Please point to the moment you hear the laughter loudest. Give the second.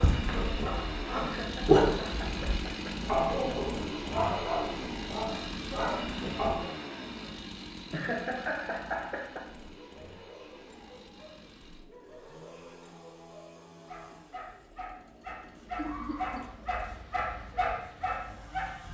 8 s.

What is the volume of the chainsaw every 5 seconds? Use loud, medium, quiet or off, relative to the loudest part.
loud, loud, quiet, quiet.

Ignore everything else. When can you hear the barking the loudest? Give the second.
2 s.